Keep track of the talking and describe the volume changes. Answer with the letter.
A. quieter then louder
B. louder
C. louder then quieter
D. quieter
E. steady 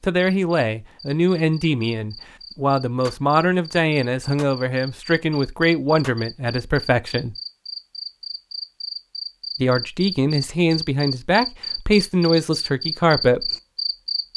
E.